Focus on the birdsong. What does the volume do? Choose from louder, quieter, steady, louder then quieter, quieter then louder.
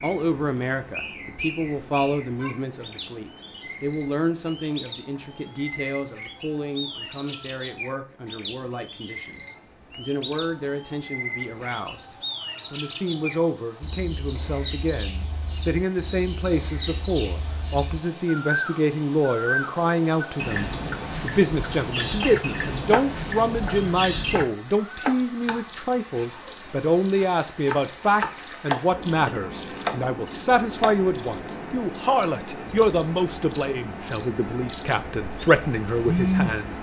louder.